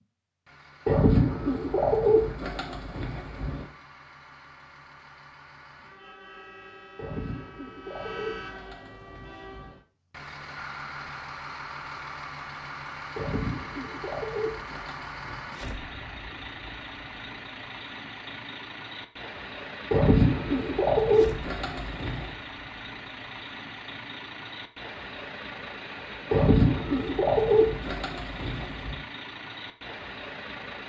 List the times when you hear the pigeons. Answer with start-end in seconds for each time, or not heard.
0.8-3.6, 7.0-9.8, 13.2-15.5, 19.9-22.2, 26.3-29.0.